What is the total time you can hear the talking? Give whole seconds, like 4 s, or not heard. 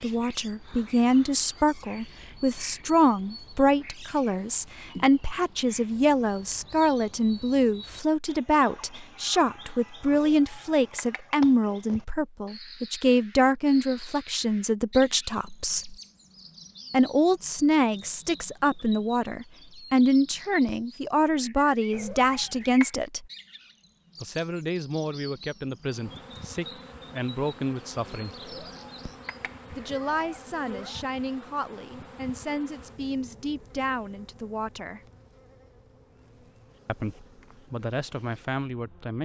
34 s.